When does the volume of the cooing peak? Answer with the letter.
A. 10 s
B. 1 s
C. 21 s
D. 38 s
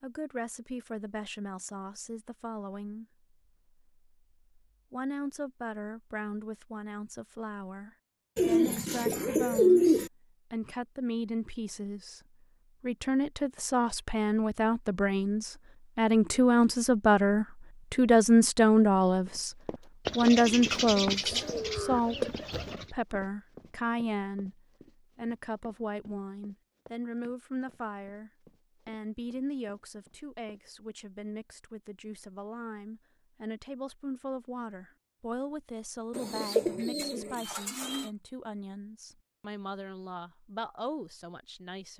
A.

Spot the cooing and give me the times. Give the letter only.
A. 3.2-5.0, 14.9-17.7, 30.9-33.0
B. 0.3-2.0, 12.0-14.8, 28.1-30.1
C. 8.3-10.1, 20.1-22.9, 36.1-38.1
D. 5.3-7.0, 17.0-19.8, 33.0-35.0
C.